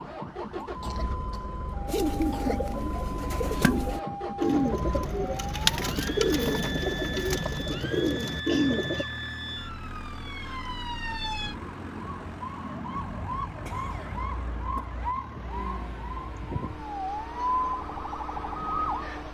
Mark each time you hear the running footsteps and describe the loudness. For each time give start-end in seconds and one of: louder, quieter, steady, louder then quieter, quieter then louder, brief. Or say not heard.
not heard.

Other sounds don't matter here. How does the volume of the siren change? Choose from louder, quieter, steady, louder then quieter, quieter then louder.
louder.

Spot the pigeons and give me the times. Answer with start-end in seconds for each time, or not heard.
1.9-9.1.